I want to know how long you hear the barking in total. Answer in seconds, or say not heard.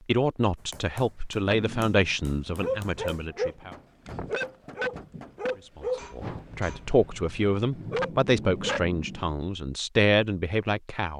8 s.